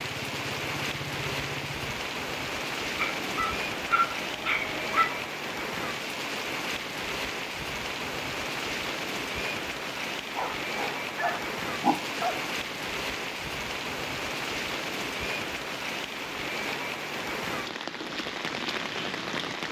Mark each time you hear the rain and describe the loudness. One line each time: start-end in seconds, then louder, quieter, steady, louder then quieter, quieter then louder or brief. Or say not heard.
0.0-19.6 steady.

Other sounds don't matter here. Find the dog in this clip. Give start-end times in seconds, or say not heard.
3.0-5.2, 10.3-12.4.